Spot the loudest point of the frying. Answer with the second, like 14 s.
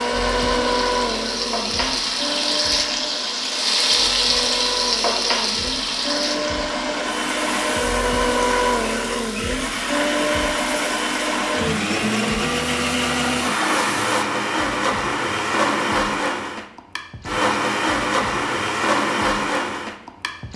4 s.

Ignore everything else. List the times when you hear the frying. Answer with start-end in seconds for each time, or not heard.
0.0-14.2.